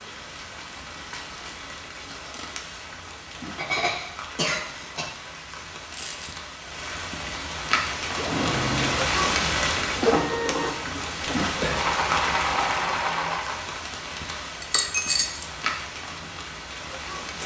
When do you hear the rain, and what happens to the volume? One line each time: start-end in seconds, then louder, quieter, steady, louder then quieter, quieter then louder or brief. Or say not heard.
0.0-17.4 louder then quieter.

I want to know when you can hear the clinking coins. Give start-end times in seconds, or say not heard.
0.9-2.7, 5.9-6.5, 14.6-15.5.